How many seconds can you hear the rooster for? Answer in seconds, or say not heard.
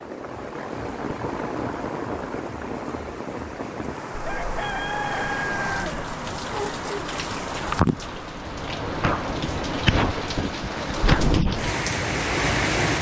2 s.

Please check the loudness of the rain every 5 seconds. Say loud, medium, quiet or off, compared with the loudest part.
medium, loud, loud.